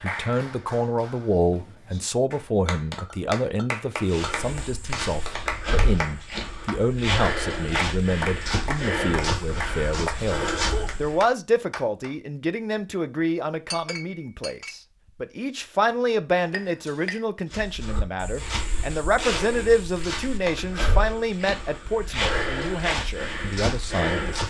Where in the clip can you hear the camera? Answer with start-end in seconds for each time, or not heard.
not heard.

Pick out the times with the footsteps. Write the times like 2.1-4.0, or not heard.
4.0-11.2, 17.5-24.4.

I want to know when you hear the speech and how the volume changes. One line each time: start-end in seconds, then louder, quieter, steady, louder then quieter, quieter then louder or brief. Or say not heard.
0.0-24.4 steady.